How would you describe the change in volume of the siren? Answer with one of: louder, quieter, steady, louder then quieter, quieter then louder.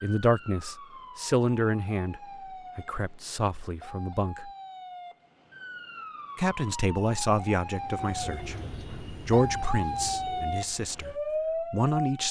louder.